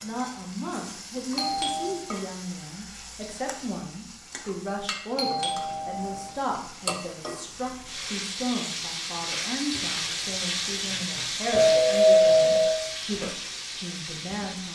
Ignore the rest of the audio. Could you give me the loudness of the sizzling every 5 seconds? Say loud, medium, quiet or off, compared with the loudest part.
medium, loud, loud.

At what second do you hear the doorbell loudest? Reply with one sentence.
The volume of the doorbell peaks at 12 seconds.